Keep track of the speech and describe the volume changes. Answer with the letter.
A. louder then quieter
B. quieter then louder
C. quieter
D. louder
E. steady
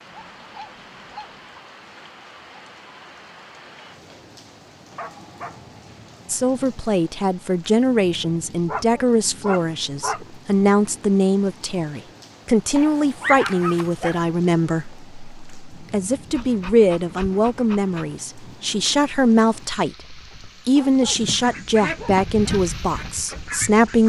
E.